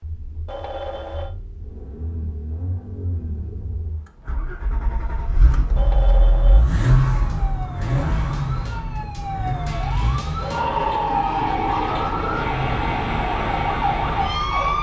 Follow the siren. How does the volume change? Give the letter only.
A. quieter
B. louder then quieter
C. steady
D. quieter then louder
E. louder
E.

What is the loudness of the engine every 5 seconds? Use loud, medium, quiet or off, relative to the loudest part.
quiet, loud, medium.